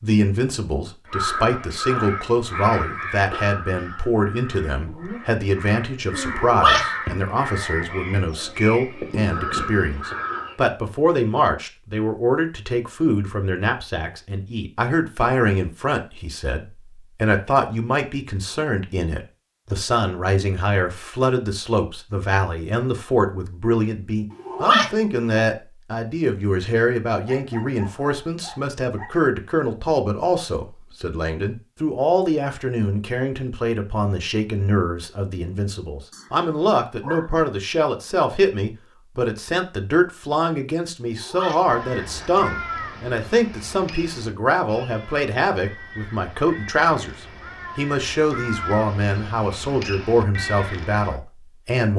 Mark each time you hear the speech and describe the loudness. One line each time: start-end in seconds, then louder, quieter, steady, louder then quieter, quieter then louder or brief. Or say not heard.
0.0-51.9 steady.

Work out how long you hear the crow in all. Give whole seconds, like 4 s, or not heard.
19 s.